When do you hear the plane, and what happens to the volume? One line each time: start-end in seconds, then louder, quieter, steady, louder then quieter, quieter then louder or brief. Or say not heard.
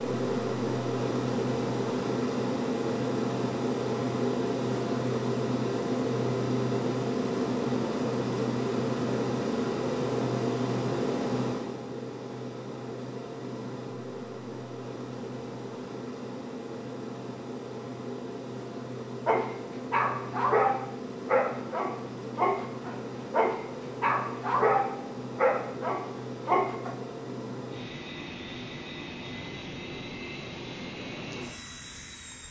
0.0-32.4 quieter.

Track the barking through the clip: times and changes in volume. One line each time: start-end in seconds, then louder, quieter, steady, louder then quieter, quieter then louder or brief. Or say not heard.
19.2-26.9 steady.